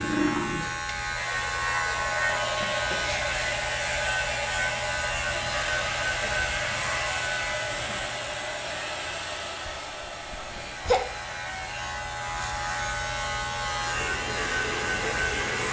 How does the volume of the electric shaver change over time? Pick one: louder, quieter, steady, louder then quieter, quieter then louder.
quieter then louder.